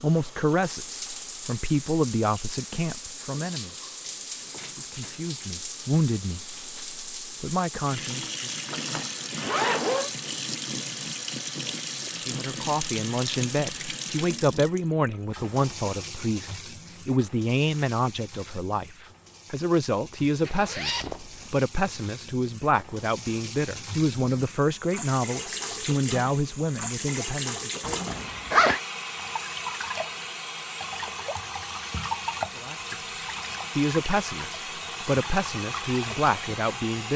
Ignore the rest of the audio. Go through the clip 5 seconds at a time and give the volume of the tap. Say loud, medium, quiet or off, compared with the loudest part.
medium, loud, loud, medium, medium, loud, loud, loud.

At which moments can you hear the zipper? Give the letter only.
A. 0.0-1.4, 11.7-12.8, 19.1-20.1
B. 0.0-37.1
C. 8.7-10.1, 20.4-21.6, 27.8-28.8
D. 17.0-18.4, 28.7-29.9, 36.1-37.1
C.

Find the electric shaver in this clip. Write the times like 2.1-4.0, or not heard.
not heard.